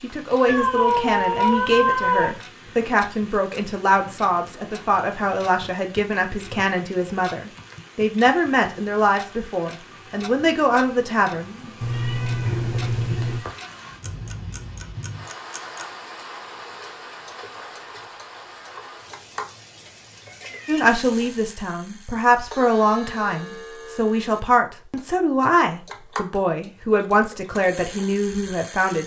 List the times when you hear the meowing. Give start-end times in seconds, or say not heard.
0.5-2.4, 11.8-13.4, 19.9-20.9.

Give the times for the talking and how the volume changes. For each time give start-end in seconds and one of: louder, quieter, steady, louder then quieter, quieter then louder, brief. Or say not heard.
0.0-11.7 steady
20.6-29.0 steady.